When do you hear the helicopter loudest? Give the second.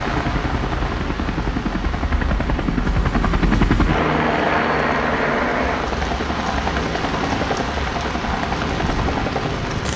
4 s.